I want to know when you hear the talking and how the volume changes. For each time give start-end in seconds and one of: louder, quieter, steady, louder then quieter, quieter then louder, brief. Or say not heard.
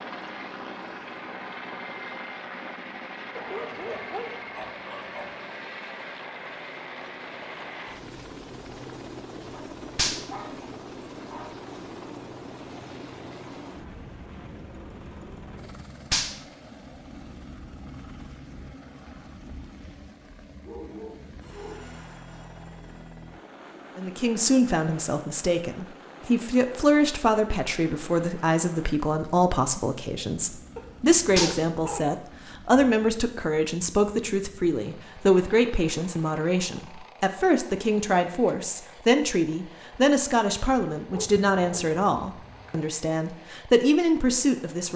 23.9-44.9 steady.